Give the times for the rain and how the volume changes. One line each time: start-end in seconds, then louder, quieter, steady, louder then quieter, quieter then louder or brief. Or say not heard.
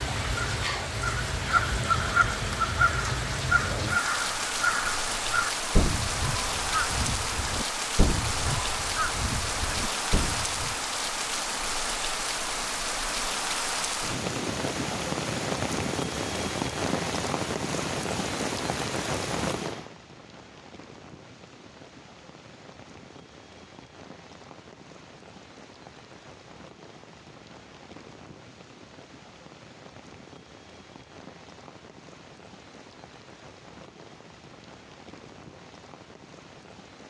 0.0-37.0 quieter.